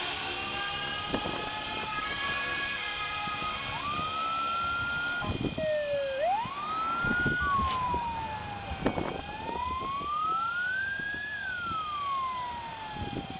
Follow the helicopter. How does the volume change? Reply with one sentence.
The volume of the helicopter goes down.